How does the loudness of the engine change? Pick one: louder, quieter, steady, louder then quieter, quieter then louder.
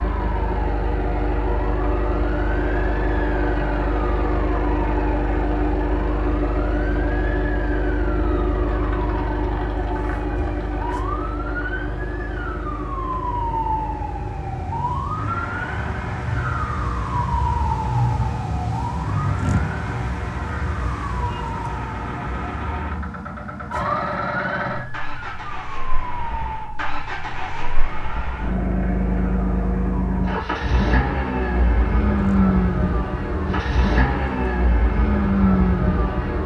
quieter then louder.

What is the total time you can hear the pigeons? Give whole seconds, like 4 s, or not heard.
not heard.